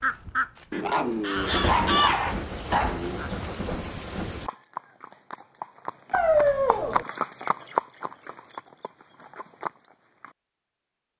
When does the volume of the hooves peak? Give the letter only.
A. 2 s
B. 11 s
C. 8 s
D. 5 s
C.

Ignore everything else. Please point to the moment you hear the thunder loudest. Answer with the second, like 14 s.
2 s.